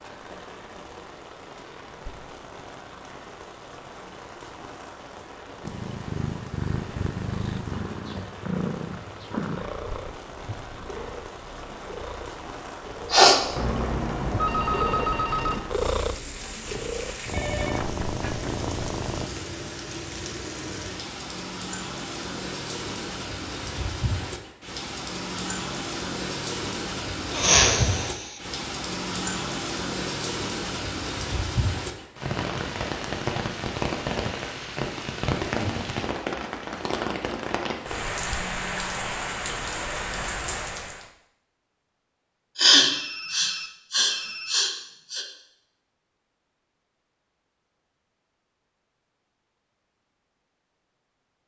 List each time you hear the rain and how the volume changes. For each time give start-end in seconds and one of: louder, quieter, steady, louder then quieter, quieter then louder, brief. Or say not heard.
0.0-41.1 louder.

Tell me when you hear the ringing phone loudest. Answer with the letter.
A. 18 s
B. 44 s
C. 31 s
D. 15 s
D.